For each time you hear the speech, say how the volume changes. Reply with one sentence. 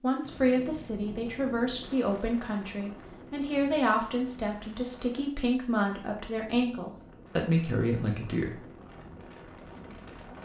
The speech can be heard from 0.0 to 8.7 s, at a steady volume.